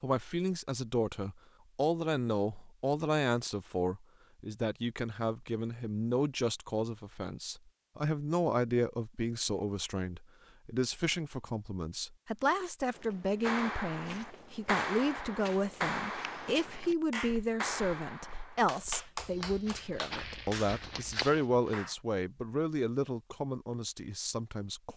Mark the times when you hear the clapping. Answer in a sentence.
You can hear the clapping from 13.4 to 21.9 s.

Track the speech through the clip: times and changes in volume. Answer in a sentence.
The speech can be heard from 0.0 to 24.9 s, at a steady volume.